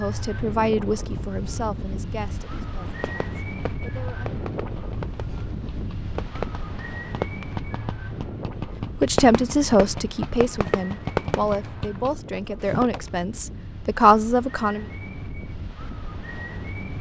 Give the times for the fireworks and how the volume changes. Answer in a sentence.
You can hear the fireworks from 2.6 to 13.0 s, getting louder.